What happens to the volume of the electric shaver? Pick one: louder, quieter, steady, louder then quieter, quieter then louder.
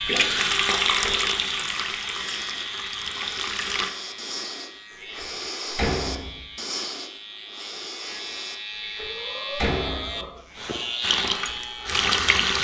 quieter then louder.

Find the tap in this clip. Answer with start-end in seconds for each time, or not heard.
0.0-3.9, 11.0-12.5.